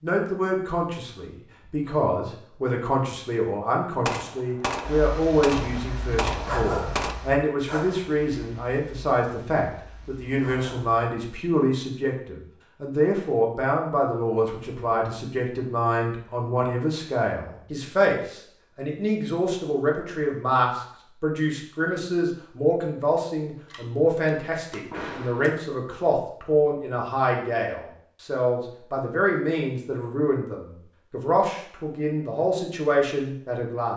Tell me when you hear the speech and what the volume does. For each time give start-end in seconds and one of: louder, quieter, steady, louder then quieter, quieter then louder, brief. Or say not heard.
0.0-33.9 steady.